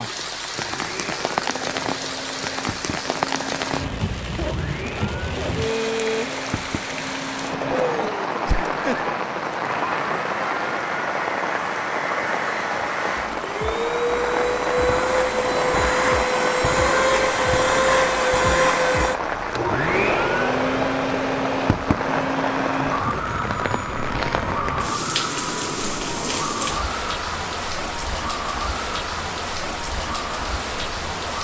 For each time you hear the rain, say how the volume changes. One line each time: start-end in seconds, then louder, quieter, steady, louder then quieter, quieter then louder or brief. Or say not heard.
0.0-31.4 steady.